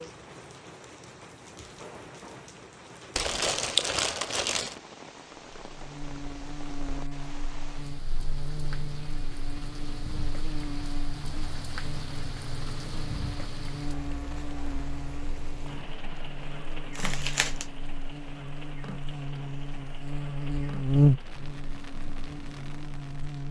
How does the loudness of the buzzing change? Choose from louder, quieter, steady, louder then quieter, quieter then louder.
louder.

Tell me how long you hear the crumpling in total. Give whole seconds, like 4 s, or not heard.
2 s.